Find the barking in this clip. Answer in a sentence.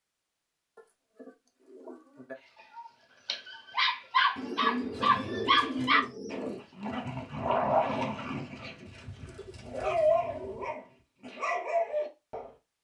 You can hear the barking from 2.8 to 12.6 s.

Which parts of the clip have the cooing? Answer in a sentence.
You can hear the cooing from 0.8 to 2.4 s, from 4.3 to 6.6 s and from 8.8 to 10.8 s.